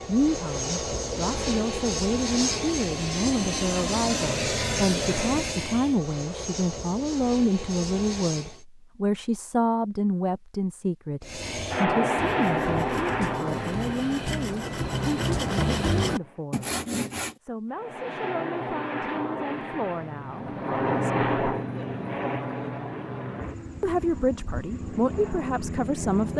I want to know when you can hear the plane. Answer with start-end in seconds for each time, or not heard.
0.0-8.6, 11.2-16.4, 17.7-26.3.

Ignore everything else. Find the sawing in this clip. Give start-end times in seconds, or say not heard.
12.2-17.4.